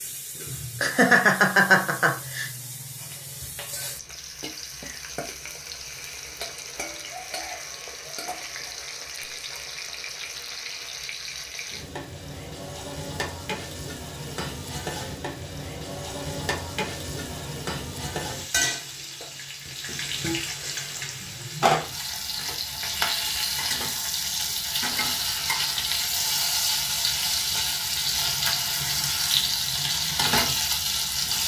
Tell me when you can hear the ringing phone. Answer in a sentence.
You can't hear the ringing phone here.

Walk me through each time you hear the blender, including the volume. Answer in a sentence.
The blender can't be heard in this clip.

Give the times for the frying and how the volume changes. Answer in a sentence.
You can hear the frying from 0.0 to 31.4 s, getting louder.